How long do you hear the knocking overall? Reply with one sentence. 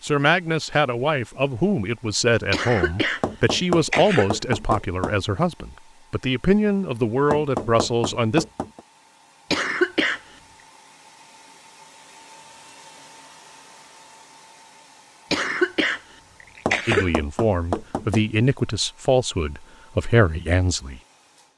The knocking can be heard for 5 seconds in total.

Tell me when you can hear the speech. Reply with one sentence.
The speech can be heard from 0.0 to 8.4 s and from 16.9 to 21.0 s.